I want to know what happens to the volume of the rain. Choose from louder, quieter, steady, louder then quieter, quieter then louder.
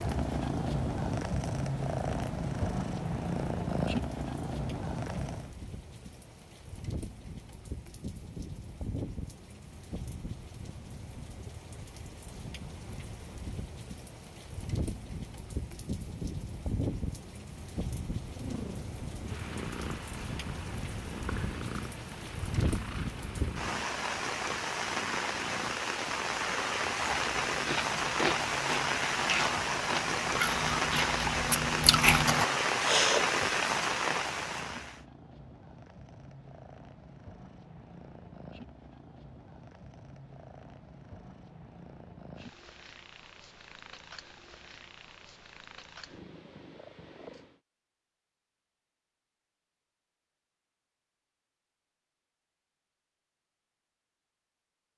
louder.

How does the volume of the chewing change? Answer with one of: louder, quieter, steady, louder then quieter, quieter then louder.
louder.